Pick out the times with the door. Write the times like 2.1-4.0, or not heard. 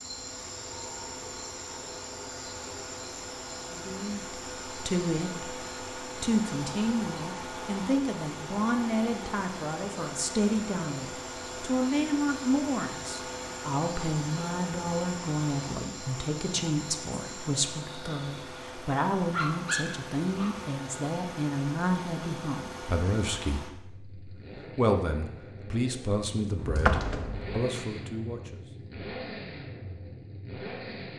26.6-27.6.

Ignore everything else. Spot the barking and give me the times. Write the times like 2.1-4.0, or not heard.
19.2-20.7.